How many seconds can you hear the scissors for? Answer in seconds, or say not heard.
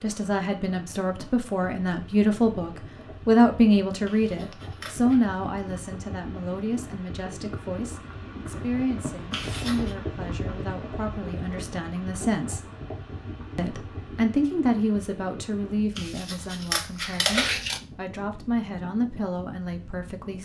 4 s.